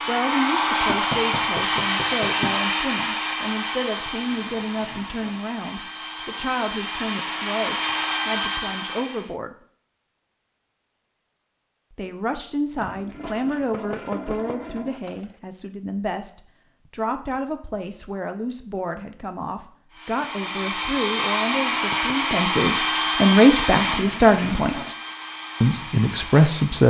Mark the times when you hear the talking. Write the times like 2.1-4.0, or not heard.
0.1-9.6, 11.9-24.8, 25.6-26.8.